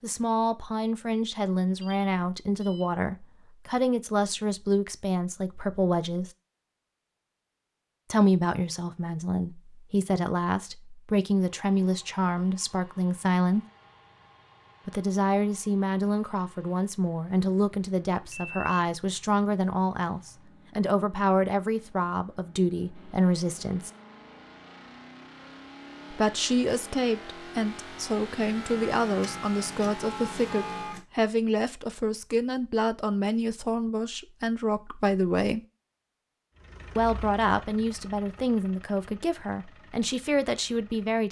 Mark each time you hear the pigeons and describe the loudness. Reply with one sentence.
The pigeons can't be heard in this clip.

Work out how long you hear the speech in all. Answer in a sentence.
You can hear the speech for 35 seconds altogether.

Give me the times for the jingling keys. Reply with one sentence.
You can't hear the jingling keys here.